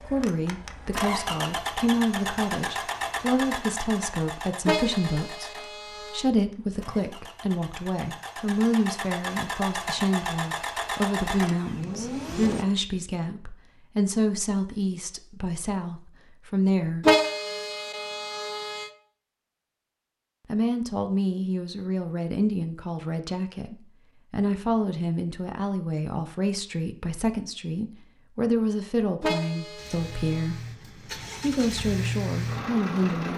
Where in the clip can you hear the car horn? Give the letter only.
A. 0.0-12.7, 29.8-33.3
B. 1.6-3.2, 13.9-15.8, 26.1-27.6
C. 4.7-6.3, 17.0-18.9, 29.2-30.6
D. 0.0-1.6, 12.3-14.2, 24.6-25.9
C.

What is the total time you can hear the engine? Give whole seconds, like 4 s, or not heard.
16 s.